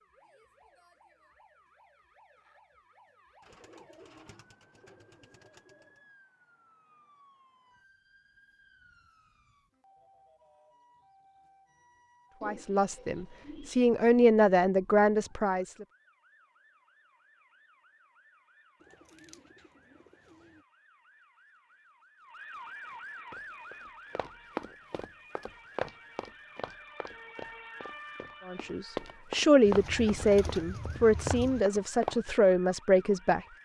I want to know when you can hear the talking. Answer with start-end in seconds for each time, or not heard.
12.4-15.8, 28.4-33.4.